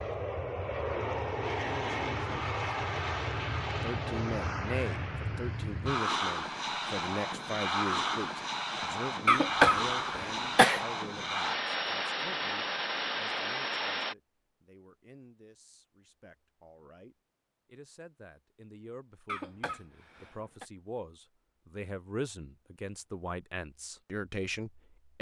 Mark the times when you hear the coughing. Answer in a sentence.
The coughing can be heard from 9.2 to 10.8 s and from 19.2 to 20.6 s.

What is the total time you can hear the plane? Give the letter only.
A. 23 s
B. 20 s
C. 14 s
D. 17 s
C.